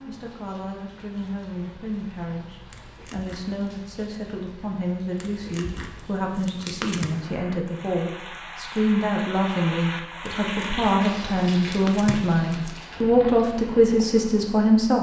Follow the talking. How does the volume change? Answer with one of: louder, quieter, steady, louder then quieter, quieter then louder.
louder.